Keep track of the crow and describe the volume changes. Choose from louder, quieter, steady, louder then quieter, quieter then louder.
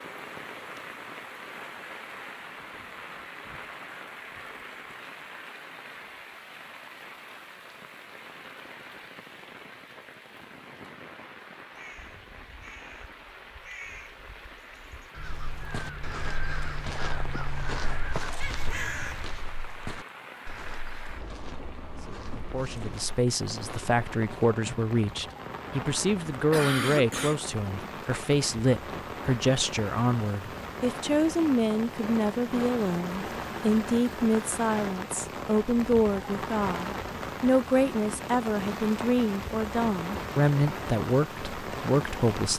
louder.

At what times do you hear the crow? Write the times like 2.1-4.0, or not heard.
11.7-19.4.